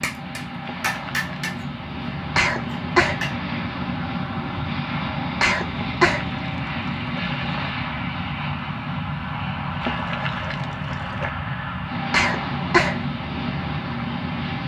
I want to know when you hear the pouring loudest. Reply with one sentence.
The volume of the pouring peaks at 10 seconds.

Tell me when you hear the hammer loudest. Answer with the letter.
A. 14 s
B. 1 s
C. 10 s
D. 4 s
B.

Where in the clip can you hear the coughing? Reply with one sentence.
You can hear the coughing from 2.4 to 3.2 s, from 5.4 to 6.2 s and from 12.1 to 13.0 s.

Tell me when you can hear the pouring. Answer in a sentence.
The pouring can be heard from 0.6 to 1.5 s, from 5.8 to 7.8 s and from 9.8 to 11.3 s.